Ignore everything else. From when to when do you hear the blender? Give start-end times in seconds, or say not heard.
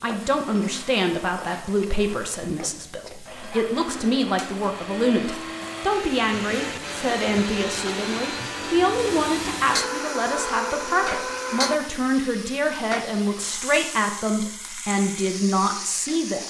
0.2-11.8.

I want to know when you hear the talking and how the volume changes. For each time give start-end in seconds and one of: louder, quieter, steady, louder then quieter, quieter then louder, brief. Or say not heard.
0.0-16.4 steady.